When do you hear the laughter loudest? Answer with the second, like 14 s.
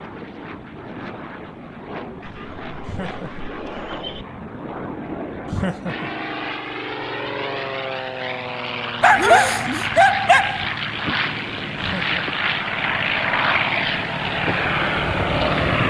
6 s.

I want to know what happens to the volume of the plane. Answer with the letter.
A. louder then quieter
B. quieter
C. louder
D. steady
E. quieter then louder
C.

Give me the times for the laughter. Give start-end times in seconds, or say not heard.
2.9-3.5, 5.5-6.1, 11.8-12.2.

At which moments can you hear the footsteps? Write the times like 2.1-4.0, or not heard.
not heard.